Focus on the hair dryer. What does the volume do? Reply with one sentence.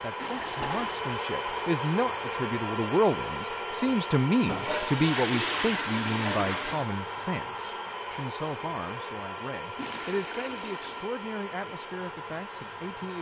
The loudness of the hair dryer goes down.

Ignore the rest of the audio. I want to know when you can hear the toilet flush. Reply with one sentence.
The toilet flush can be heard from 0.1 to 1.0 s, from 4.5 to 6.8 s and from 9.8 to 11.2 s.